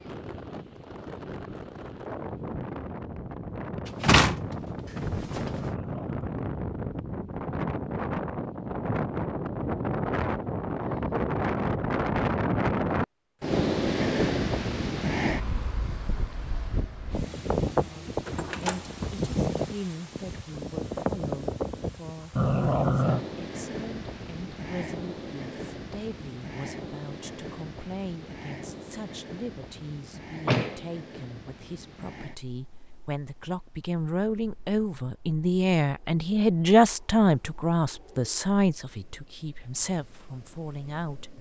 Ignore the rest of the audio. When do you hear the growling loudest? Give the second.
23 s.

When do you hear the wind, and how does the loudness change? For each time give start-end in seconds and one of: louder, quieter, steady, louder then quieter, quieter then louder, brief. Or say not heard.
0.0-41.3 louder then quieter.